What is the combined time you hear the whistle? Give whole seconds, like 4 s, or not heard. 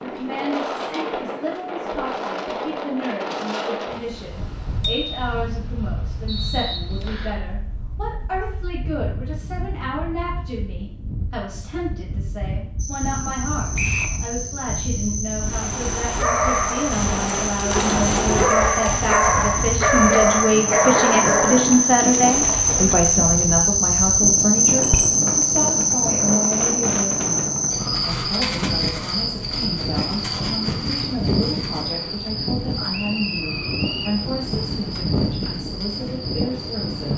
3 s.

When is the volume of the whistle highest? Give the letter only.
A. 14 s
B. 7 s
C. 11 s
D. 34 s
A.